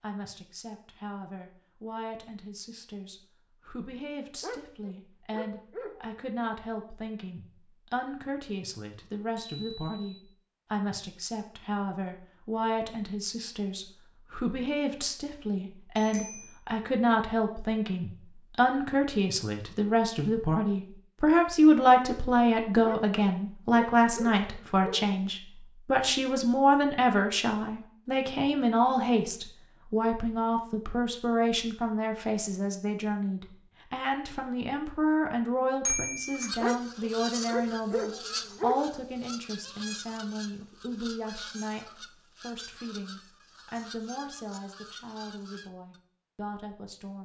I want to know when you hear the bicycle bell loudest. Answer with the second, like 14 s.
36 s.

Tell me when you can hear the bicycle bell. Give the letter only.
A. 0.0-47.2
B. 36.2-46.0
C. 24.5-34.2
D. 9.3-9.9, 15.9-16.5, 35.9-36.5
D.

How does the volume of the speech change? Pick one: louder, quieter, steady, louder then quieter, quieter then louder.
louder then quieter.